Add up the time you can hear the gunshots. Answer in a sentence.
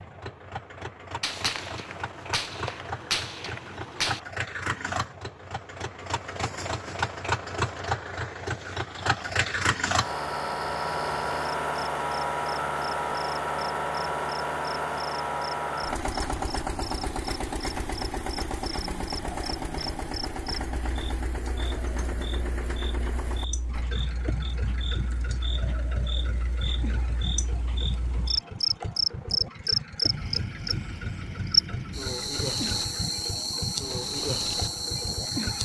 The gunshots can be heard for 3 seconds in total.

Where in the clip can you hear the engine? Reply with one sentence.
The engine can be heard from 0.0 to 35.6 s.